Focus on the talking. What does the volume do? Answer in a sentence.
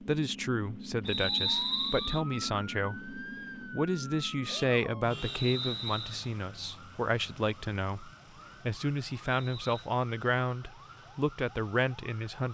The loudness of the talking stays about the same.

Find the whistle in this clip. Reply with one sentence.
You can hear the whistle from 1.1 to 2.2 s, from 5.2 to 6.2 s and from 9.3 to 9.9 s.